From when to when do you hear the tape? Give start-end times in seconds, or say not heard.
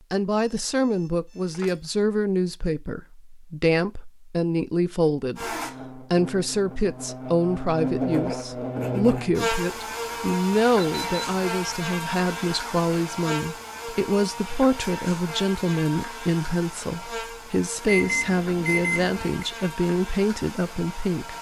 not heard.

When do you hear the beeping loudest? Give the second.
18 s.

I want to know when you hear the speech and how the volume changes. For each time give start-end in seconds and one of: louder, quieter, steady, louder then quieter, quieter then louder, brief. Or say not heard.
0.1-21.3 steady.